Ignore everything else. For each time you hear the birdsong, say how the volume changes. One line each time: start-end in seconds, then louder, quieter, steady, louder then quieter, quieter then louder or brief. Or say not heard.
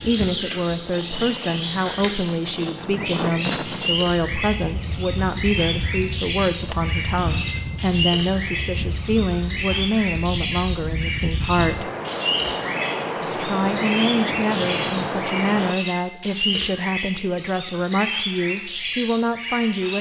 0.0-19.9 steady.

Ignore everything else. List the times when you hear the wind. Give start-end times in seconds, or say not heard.
0.0-15.8.